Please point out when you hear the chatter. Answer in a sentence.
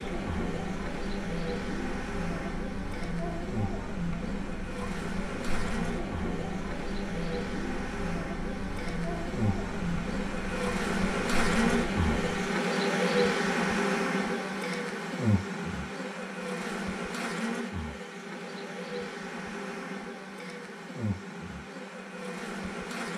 You can hear the chatter from 0.0 to 12.6 s.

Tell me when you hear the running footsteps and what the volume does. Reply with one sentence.
You can't hear the running footsteps here.